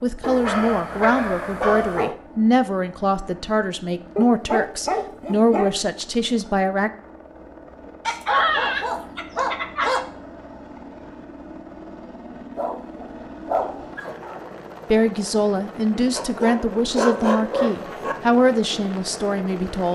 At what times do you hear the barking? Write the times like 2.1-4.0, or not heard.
0.2-2.1, 4.2-5.7, 8.1-10.1, 12.6-14.4, 16.1-18.1.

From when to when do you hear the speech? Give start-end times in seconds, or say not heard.
0.0-6.9, 14.9-19.9.